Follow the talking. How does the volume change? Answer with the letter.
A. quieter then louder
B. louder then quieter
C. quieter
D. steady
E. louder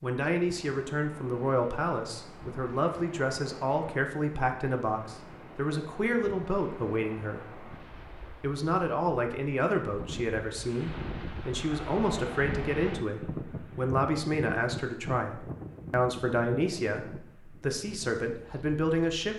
D.